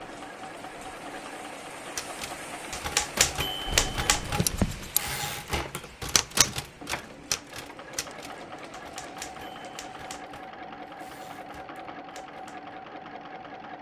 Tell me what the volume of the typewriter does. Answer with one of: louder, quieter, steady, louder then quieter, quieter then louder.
quieter.